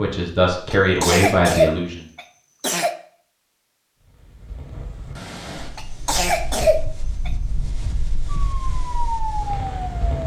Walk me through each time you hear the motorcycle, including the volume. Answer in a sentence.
You can't hear the motorcycle here.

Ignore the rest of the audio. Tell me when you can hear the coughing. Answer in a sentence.
The coughing can be heard from 0.7 to 3.0 s and from 5.8 to 7.3 s.